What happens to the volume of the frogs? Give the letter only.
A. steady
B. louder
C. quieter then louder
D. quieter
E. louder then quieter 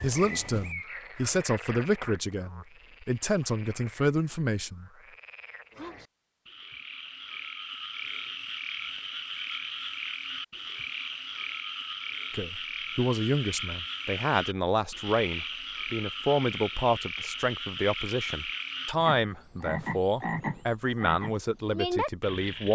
B.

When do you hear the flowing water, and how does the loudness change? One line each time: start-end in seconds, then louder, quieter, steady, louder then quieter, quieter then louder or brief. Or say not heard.
not heard.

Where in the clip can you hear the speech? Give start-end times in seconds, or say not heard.
0.0-4.9, 12.3-22.7.